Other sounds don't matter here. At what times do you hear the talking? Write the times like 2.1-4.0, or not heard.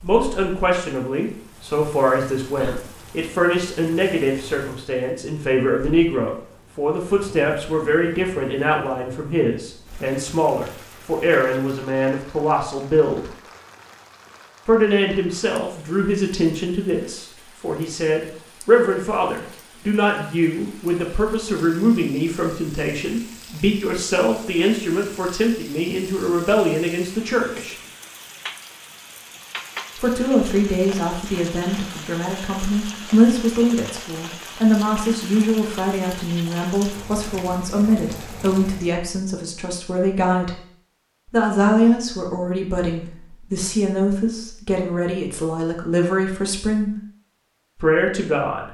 0.0-13.3, 14.7-27.8, 29.9-40.6, 41.3-46.9, 47.8-48.6.